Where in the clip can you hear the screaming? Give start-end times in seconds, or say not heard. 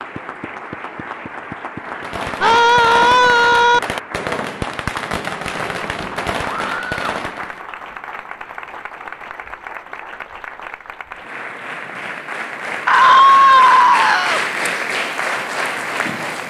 2.4-3.8, 6.5-7.1, 12.8-14.4.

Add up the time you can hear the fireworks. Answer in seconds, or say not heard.
6 s.